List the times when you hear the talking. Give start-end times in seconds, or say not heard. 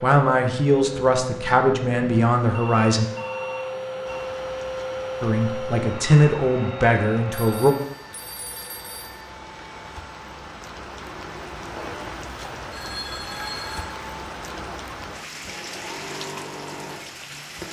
0.0-3.0, 5.2-7.8.